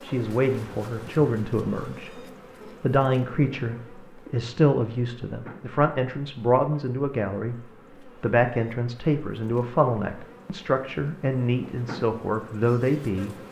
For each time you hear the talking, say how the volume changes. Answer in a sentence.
The talking can be heard briefly from 0.0 to 2.2 s; and from 2.8 to 13.3 s, at a steady volume.